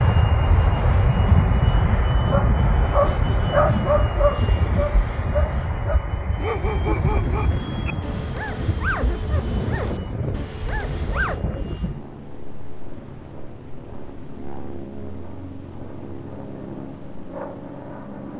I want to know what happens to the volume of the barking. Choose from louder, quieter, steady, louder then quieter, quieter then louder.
quieter.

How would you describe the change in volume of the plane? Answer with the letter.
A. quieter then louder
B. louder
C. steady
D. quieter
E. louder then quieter
D.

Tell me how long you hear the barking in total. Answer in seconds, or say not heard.
9 s.